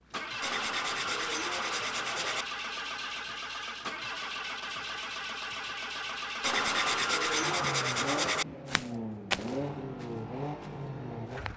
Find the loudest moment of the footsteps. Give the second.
9 s.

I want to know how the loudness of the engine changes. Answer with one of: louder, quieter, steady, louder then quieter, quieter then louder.
steady.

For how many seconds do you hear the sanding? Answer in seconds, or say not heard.
4 s.